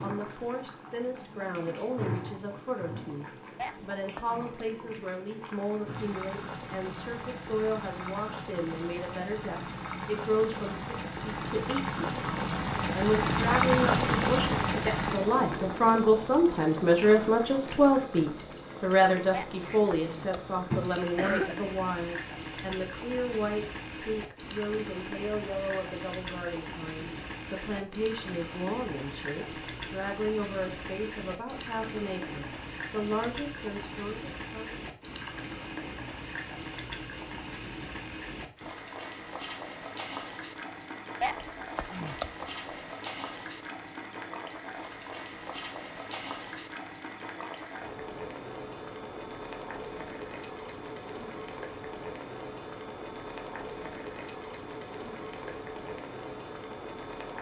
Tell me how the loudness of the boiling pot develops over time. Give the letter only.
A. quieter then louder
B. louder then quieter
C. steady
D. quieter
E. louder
B.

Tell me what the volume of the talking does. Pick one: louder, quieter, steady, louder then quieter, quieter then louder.
louder then quieter.